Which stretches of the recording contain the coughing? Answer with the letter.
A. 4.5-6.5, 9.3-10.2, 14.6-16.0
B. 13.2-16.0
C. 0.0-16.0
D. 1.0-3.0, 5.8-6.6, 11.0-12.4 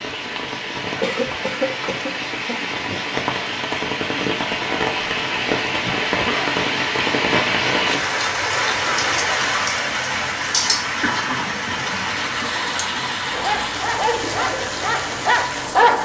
D.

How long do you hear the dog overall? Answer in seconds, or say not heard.
3 s.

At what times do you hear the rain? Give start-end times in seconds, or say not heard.
0.0-16.0.